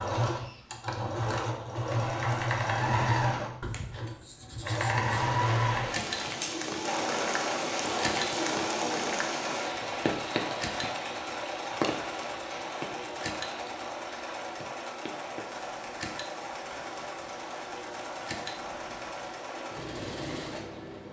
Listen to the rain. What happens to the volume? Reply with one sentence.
The loudness of the rain goes down.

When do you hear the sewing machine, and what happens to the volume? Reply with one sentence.
The sewing machine can be heard from 0.0 to 21.0 s, getting quieter.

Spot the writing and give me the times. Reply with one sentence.
The writing can be heard from 3.6 to 5.1 s.